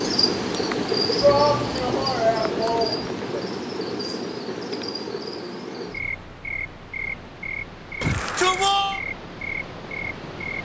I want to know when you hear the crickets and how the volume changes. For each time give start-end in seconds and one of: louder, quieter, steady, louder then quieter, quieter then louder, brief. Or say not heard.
0.0-10.6 quieter.